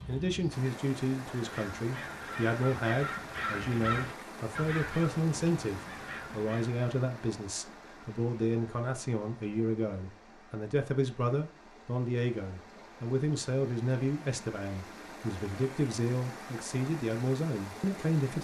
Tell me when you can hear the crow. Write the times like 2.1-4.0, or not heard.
1.4-6.8.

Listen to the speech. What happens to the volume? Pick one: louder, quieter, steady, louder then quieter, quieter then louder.
steady.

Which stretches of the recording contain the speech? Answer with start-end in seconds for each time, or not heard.
0.1-18.4.